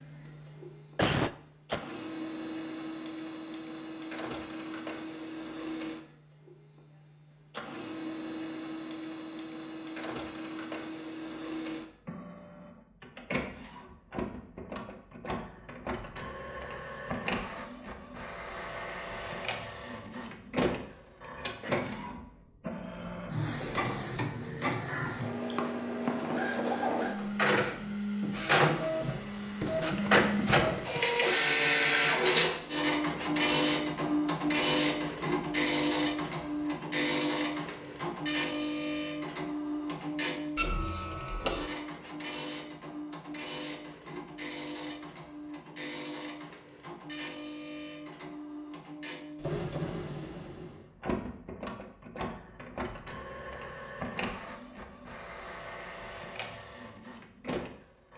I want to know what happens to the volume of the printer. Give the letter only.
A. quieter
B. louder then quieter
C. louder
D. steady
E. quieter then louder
B.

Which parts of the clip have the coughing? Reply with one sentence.
The coughing can be heard from 0.9 to 1.8 s.